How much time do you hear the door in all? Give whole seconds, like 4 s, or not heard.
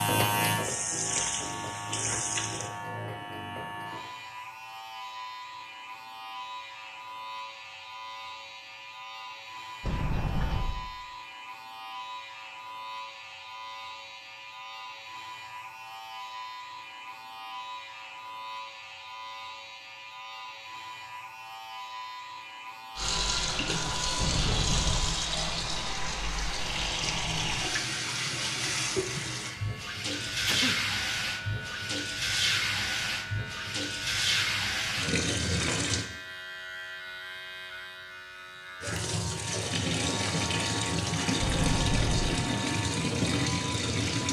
3 s.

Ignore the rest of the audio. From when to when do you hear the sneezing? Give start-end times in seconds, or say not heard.
30.1-30.8.